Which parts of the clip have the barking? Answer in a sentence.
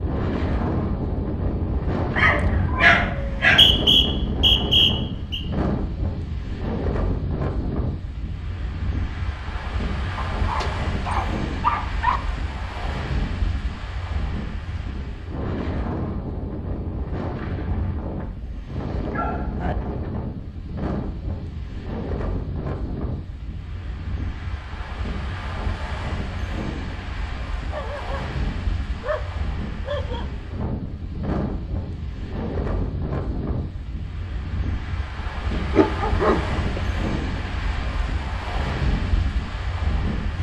The barking can be heard from 2.1 to 3.7 s, from 10.2 to 12.2 s, from 19.1 to 19.8 s, from 27.7 to 28.1 s, from 29.0 to 30.3 s and from 35.5 to 36.8 s.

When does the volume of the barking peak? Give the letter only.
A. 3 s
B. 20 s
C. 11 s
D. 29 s
A.